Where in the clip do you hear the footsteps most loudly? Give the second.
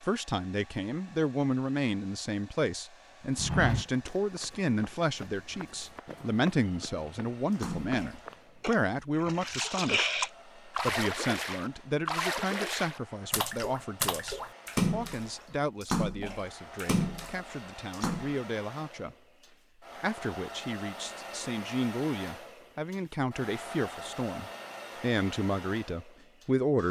4 s.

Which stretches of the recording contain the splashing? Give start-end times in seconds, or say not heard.
7.6-18.4.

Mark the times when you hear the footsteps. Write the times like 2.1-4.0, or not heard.
3.4-8.7.